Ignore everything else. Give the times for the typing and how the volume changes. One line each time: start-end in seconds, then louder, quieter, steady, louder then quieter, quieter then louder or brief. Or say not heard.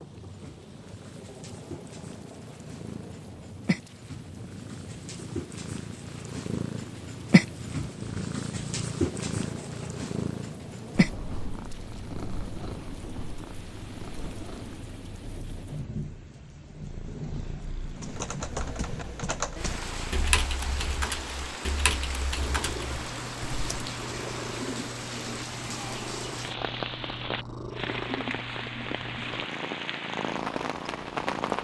17.9-23.9 louder then quieter.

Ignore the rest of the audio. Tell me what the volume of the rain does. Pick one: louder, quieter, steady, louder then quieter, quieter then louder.
louder.